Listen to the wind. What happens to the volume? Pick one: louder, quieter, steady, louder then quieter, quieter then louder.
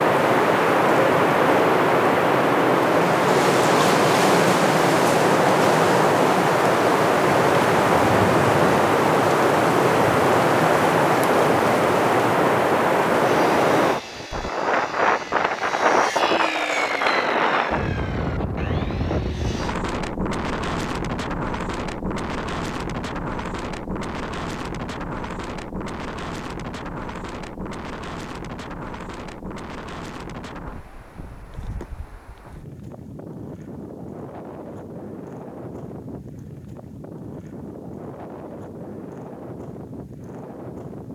quieter.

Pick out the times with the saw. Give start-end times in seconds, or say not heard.
13.2-19.8.